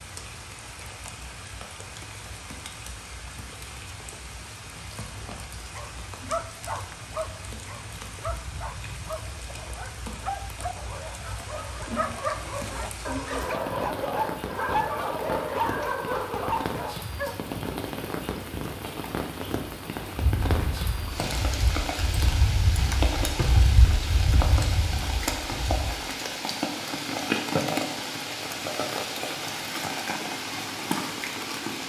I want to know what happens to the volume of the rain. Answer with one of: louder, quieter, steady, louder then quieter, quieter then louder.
louder.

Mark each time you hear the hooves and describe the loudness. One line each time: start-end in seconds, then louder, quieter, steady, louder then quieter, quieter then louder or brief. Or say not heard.
20.1-25.9 louder then quieter.